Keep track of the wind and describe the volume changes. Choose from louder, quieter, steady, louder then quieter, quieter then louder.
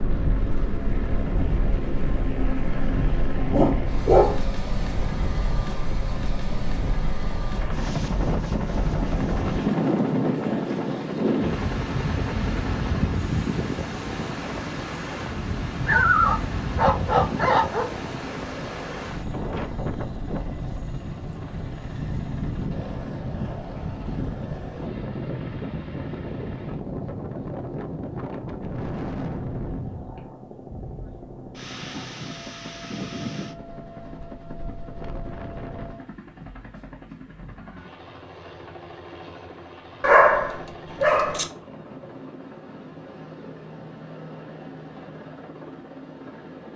louder then quieter.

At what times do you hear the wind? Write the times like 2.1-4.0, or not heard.
0.0-36.0.